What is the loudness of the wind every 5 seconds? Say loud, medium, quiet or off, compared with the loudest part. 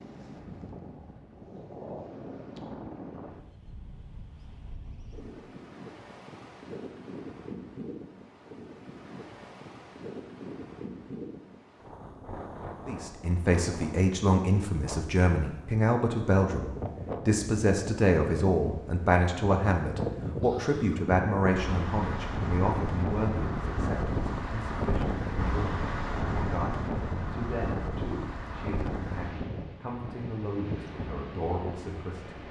medium, medium, medium, medium, loud, loud, medium.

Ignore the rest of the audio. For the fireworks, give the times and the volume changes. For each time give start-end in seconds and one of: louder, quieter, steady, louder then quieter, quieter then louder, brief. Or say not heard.
not heard.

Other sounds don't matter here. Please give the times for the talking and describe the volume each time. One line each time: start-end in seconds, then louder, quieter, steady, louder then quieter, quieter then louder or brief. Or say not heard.
12.8-32.4 quieter.